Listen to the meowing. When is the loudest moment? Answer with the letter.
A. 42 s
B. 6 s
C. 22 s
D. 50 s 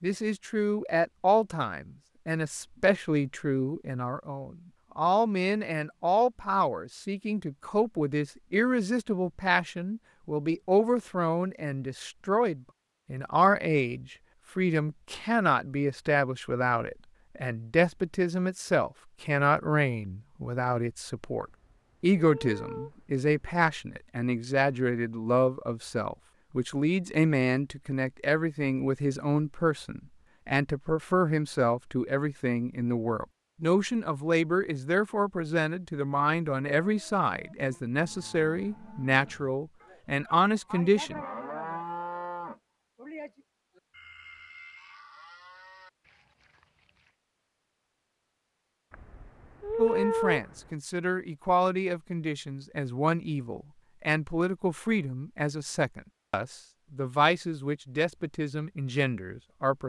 D.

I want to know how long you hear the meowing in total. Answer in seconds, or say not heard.
4 s.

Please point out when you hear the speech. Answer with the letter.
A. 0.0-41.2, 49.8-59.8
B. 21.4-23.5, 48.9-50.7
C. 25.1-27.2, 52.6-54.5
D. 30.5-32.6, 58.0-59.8
A.